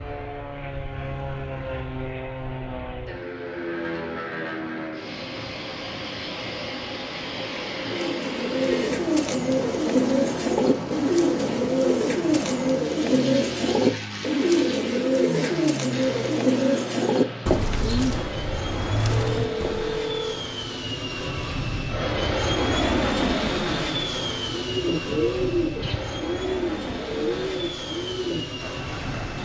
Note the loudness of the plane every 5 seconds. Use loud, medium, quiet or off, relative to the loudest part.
medium, medium, medium, medium, loud, medium.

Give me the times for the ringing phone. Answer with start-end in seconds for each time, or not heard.
19.1-20.4.